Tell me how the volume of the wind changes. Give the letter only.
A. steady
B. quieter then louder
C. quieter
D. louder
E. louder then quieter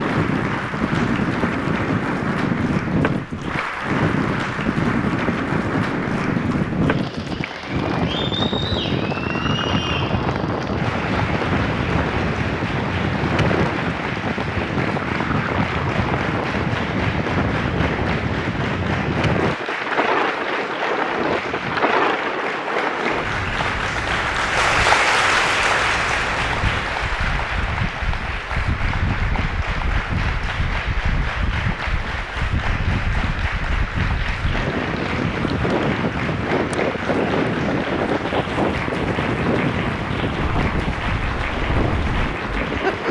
B.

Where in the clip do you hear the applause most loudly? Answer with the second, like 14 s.
25 s.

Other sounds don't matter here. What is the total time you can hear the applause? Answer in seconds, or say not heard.
43 s.